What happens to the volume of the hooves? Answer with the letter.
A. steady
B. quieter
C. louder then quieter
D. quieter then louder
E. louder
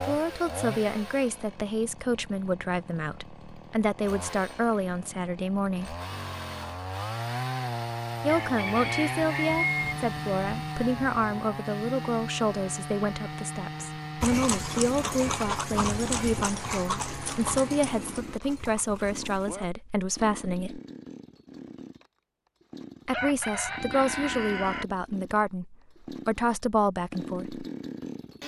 B.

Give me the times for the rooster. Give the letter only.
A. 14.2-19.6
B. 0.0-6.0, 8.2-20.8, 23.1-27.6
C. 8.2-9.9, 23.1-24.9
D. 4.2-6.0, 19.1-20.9
C.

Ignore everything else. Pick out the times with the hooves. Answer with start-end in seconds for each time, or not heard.
14.2-19.6.